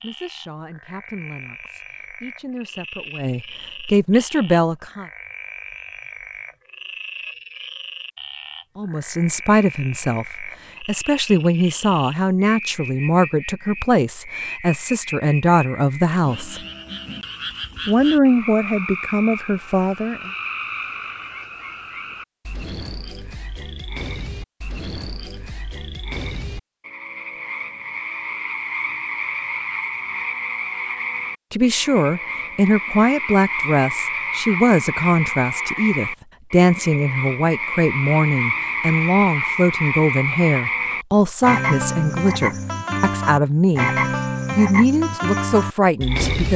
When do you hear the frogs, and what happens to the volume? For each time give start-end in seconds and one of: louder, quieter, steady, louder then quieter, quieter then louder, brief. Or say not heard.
0.0-46.5 louder.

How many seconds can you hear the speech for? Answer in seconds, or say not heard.
30 s.